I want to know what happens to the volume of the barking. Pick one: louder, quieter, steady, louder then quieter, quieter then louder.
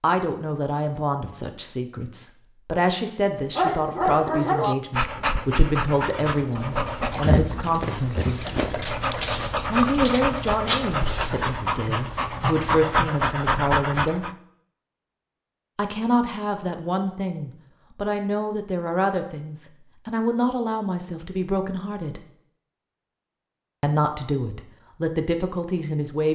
steady.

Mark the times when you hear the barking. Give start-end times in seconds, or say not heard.
3.5-14.3.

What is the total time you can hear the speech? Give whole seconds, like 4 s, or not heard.
22 s.